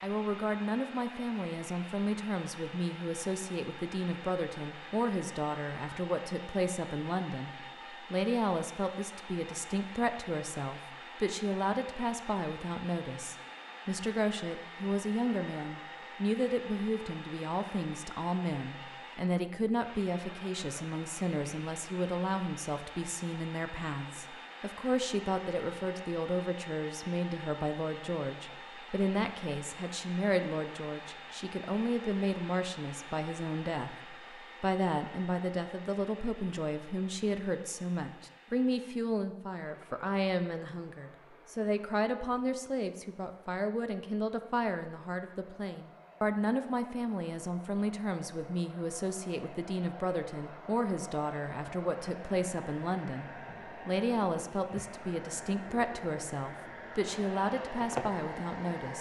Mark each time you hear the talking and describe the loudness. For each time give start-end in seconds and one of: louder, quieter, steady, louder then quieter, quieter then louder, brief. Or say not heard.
0.0-58.9 steady.